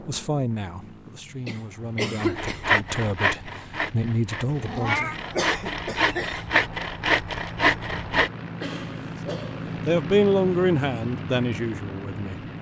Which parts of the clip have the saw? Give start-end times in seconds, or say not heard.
2.2-8.3.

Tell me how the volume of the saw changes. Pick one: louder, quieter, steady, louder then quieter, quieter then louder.
quieter then louder.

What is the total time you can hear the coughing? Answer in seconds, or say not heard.
4 s.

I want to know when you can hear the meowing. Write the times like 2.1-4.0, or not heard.
4.5-5.2.